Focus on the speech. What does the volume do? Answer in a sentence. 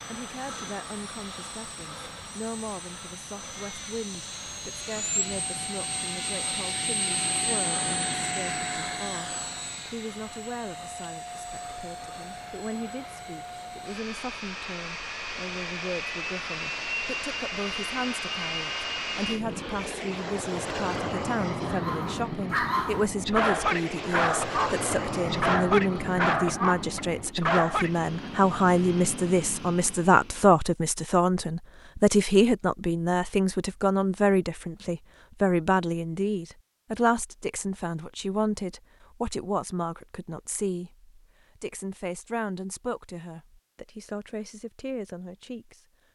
The volume of the speech goes up, then down.